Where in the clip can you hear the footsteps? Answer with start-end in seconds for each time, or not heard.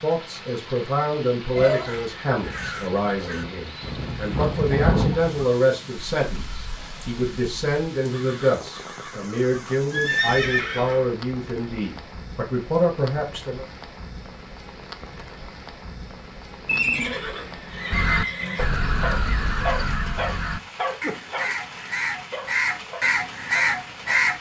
not heard.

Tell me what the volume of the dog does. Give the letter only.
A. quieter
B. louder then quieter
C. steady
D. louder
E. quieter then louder
A.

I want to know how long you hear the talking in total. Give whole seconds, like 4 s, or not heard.
14 s.